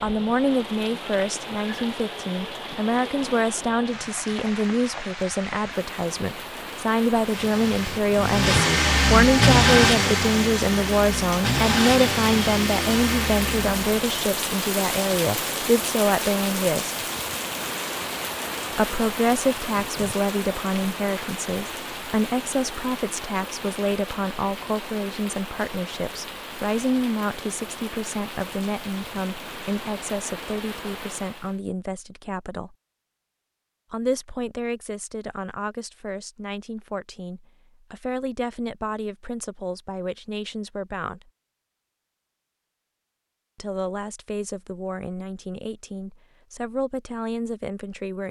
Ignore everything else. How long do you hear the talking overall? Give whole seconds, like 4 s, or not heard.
43 s.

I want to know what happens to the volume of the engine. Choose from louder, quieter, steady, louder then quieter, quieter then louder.
louder then quieter.